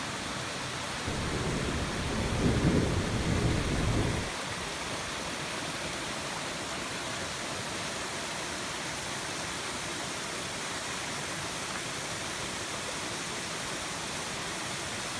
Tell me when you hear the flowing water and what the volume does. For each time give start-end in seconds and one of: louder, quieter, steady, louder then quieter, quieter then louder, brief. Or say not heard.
0.0-15.1 steady.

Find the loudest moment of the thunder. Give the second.
3 s.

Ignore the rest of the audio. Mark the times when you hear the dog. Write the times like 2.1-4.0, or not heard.
not heard.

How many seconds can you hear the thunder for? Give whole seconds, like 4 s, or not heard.
3 s.